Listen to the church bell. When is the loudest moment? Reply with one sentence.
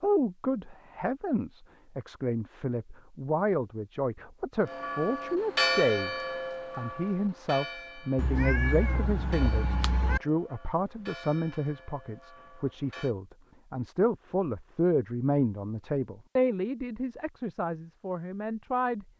The volume of the church bell peaks at 6 seconds.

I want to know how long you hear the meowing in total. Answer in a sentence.
You can hear the meowing for 2 seconds altogether.